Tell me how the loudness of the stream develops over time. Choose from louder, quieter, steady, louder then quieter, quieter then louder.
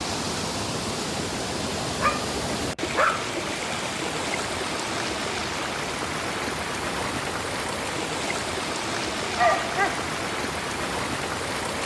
steady.